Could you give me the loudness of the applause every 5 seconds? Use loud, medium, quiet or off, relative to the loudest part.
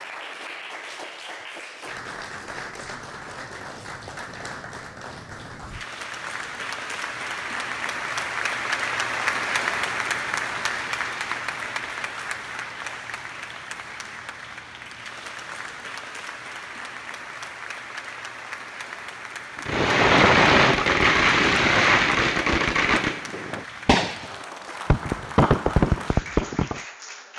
medium, loud, loud, medium, medium, medium.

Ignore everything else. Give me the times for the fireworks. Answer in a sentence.
The fireworks can be heard from 19.6 to 26.8 s.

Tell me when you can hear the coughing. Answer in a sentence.
You can't hear the coughing here.